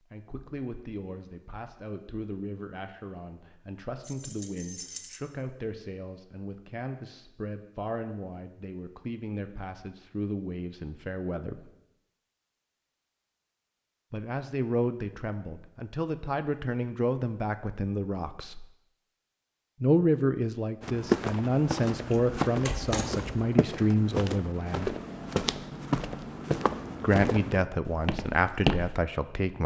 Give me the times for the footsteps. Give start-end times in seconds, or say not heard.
20.8-29.0.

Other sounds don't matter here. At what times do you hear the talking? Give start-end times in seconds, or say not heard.
0.1-11.7, 14.1-18.6, 19.8-24.9, 27.0-29.6.